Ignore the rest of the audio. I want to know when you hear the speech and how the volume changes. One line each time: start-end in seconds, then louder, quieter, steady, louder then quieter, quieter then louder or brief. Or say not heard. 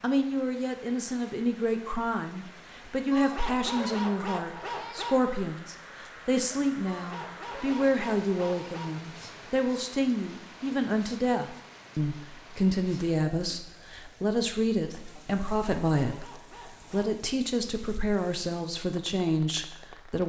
0.0-20.2 steady.